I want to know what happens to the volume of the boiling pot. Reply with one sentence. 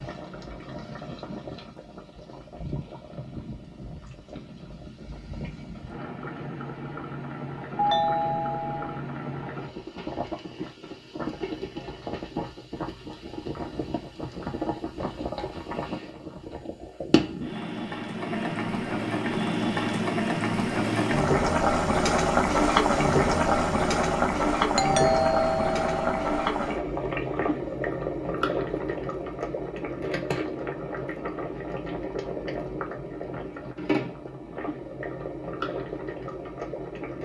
The loudness of the boiling pot goes up, then down.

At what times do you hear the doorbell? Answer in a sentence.
You can hear the doorbell from 7.8 to 9.0 s and from 24.8 to 26.4 s.